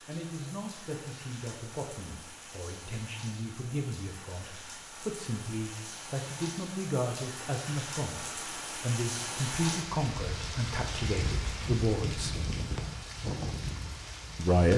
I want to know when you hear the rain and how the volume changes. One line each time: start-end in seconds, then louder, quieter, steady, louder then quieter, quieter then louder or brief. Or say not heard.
0.0-14.7 louder.